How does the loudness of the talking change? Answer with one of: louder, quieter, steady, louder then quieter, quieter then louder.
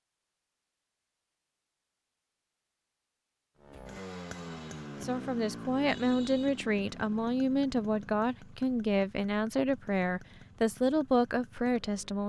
steady.